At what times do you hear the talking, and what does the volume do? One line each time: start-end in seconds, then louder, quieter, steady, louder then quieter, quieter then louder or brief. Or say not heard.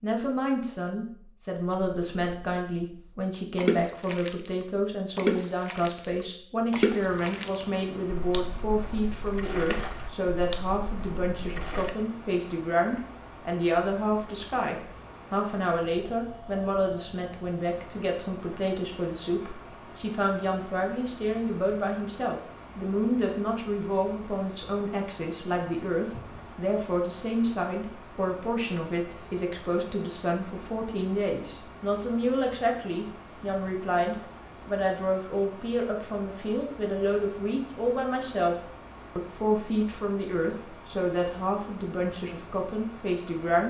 0.0-43.6 steady.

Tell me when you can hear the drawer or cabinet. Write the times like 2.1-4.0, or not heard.
26.1-26.6.